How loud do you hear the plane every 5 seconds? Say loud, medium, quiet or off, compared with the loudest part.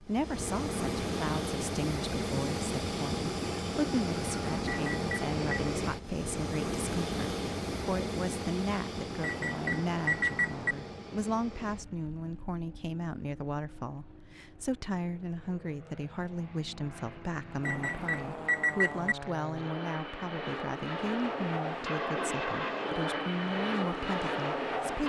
loud, loud, quiet, medium, loud.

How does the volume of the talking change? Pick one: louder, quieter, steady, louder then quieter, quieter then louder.
steady.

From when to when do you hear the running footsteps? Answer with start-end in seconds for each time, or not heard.
not heard.